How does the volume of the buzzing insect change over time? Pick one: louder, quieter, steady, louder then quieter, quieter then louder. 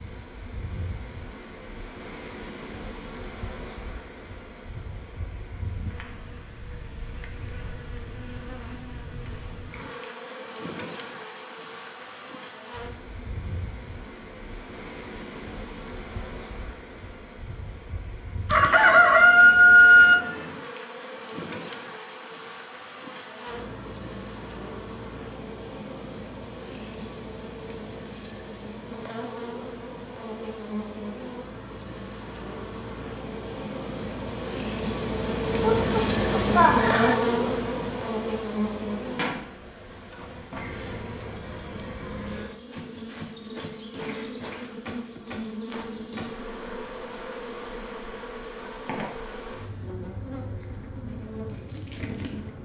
louder then quieter.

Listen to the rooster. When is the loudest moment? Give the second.
20 s.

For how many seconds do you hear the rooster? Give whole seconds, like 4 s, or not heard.
3 s.